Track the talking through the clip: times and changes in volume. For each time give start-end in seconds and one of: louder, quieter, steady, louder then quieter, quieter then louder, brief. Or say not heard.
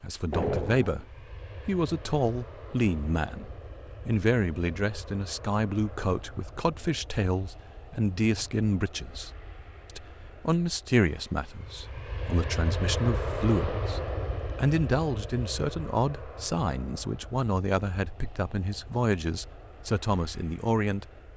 0.0-21.1 steady.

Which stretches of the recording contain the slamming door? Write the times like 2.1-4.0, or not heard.
0.3-1.1.